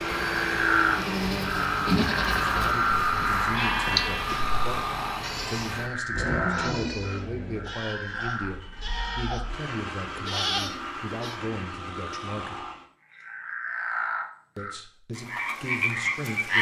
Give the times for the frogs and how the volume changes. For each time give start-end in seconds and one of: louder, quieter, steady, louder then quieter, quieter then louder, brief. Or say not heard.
0.0-16.5 quieter then louder.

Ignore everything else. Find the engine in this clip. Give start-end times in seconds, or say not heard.
0.0-12.8.